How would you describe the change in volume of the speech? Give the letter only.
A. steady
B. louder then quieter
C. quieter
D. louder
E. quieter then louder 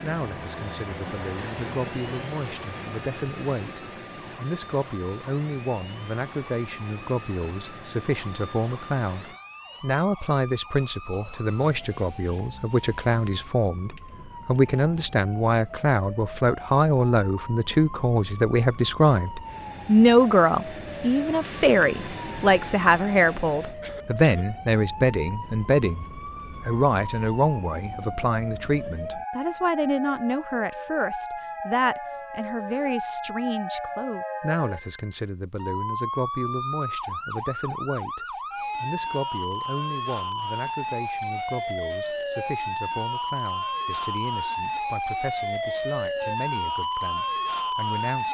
B.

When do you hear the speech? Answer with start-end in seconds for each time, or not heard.
0.0-48.2.